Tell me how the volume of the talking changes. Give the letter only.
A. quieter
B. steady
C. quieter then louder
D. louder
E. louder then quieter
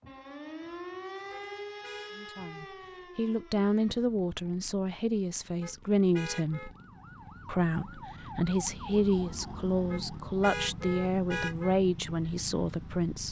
B.